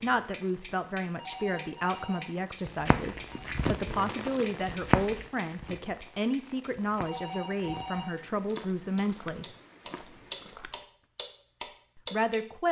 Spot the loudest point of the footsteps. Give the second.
5 s.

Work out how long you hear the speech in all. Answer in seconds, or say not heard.
10 s.